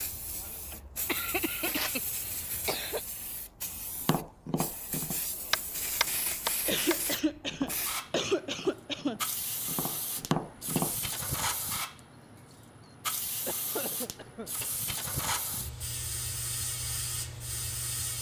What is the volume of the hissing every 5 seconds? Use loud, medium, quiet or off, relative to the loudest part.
medium, loud, loud, loud.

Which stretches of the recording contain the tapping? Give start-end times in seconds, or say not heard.
4.0-10.9.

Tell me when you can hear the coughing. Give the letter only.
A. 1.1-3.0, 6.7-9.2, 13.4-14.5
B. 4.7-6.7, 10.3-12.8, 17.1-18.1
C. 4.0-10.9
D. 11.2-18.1
A.